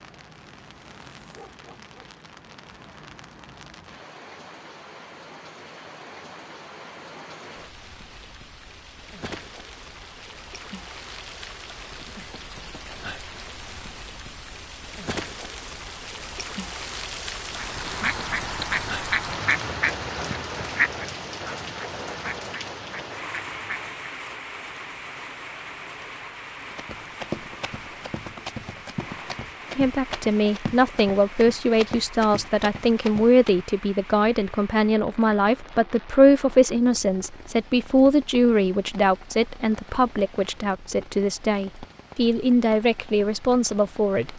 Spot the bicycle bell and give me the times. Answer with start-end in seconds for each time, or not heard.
not heard.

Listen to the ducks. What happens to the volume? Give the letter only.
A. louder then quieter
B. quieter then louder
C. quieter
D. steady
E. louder
C.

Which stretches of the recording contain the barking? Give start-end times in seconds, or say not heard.
1.2-2.1.